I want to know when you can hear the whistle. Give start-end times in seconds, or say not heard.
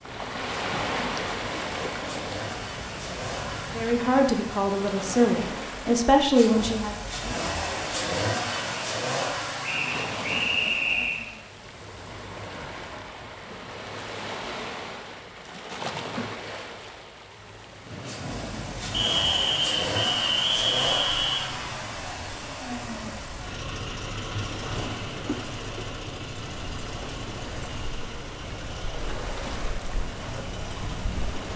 9.6-11.2, 18.9-21.4.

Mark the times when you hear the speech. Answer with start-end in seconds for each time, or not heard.
3.7-7.0.